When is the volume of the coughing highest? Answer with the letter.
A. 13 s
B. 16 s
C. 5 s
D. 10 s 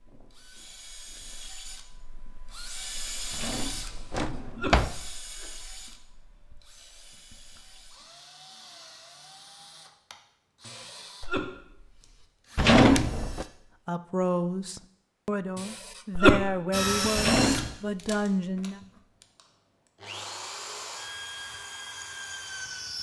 B.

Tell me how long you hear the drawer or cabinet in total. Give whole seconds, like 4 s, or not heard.
3 s.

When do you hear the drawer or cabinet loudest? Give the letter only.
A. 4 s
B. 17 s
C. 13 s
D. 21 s
C.